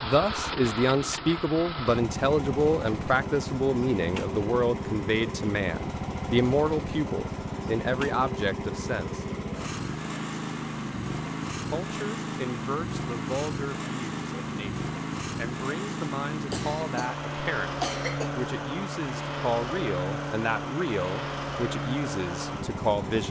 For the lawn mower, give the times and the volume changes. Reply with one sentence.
The lawn mower can be heard from 0.0 to 23.2 s, at a steady volume.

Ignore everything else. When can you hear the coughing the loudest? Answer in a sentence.
The volume of the coughing peaks at 18 seconds.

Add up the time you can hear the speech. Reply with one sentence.
The speech can be heard for 21 seconds in total.